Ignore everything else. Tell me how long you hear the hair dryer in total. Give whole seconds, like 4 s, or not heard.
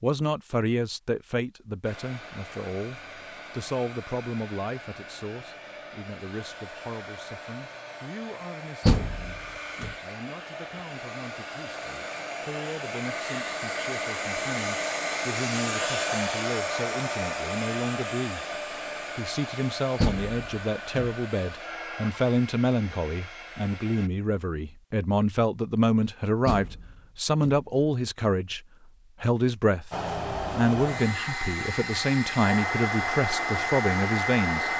27 s.